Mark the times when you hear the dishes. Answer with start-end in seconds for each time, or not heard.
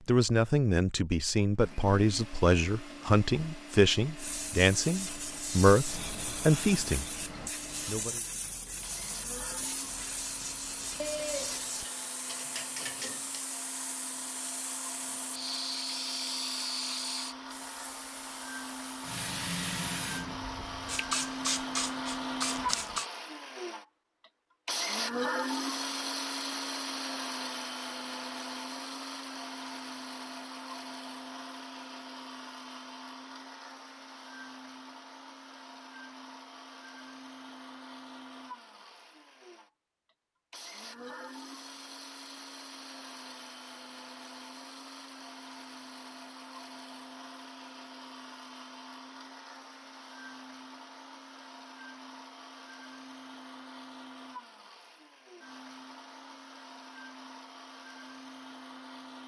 10.9-13.4.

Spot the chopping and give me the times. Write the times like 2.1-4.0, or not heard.
not heard.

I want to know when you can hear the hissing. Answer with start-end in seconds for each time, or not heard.
4.2-23.1.